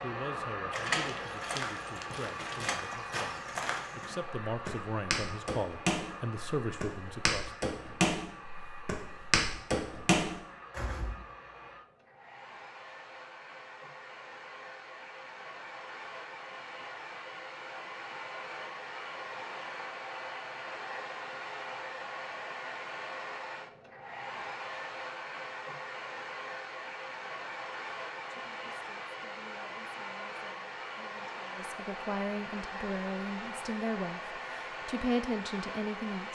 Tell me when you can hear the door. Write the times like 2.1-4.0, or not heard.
0.7-2.9.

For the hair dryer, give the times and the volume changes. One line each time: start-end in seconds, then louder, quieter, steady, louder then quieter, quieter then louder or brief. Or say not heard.
0.0-36.3 quieter then louder.